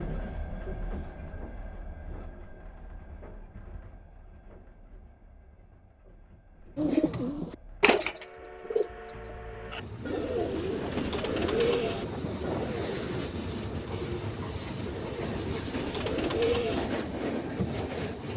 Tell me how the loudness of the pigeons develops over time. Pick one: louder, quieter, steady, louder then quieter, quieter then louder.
quieter then louder.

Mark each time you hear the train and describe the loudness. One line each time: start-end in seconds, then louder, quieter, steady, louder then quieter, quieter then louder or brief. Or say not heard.
0.0-18.3 quieter then louder.